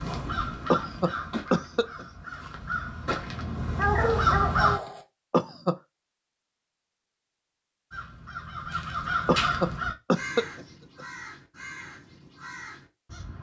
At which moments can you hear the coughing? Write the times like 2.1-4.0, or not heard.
0.7-2.0, 5.3-5.8, 9.2-11.1.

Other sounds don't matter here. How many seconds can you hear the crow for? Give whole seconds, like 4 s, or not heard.
10 s.